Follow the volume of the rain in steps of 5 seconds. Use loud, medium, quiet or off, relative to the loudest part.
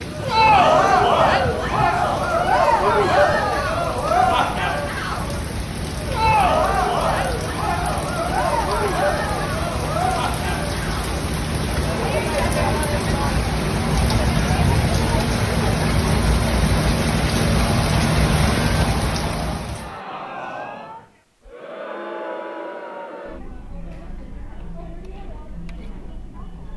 medium, medium, loud, loud, off, off.